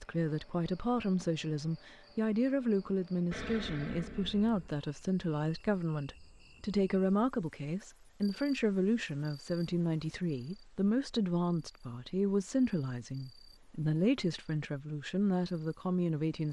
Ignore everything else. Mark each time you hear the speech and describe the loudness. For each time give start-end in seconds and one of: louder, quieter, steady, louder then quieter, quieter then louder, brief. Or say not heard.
0.0-16.4 steady.